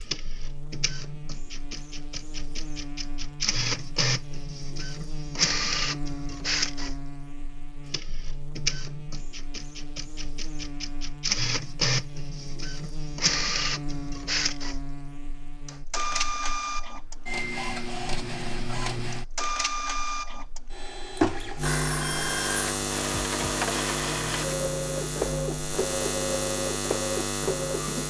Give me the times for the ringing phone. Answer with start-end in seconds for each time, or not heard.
21.6-22.8.